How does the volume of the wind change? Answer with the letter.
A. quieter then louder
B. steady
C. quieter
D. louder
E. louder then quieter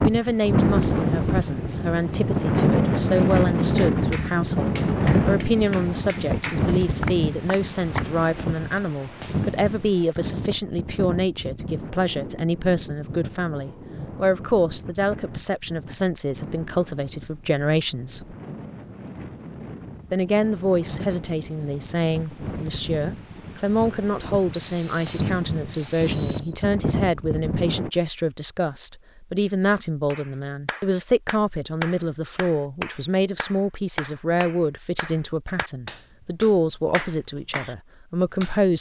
A.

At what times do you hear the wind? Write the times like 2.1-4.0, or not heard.
0.0-27.9.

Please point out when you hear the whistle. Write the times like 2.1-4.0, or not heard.
24.5-26.6.